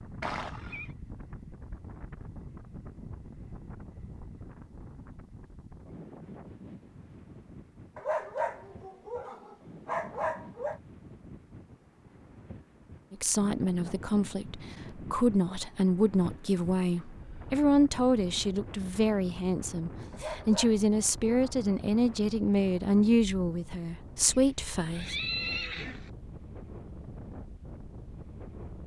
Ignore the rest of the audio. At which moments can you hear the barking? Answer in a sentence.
The barking can be heard from 8.0 to 10.8 s and from 20.1 to 21.6 s.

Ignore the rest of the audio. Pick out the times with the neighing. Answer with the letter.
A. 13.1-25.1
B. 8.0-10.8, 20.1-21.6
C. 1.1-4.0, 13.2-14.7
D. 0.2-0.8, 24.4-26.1
D.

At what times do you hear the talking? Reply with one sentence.
You can hear the talking from 13.1 to 25.1 s.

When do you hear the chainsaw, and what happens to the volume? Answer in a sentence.
You can't hear the chainsaw here.